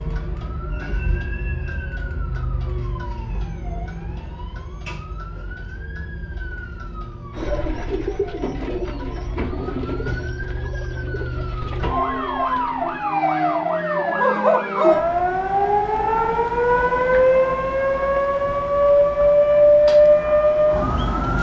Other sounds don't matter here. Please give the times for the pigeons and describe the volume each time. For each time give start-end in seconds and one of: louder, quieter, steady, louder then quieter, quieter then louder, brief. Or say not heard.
7.3-13.1 quieter.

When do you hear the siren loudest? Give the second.
20 s.